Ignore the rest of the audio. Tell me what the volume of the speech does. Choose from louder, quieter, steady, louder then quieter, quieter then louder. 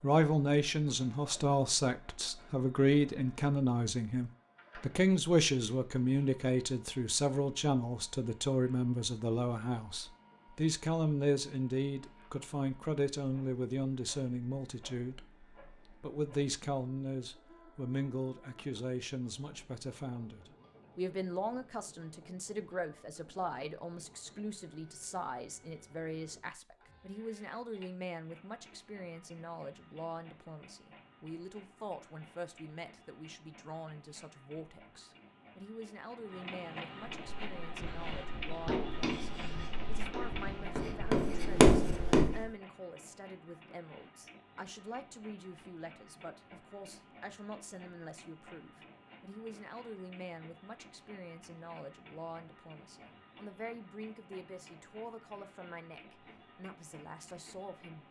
quieter.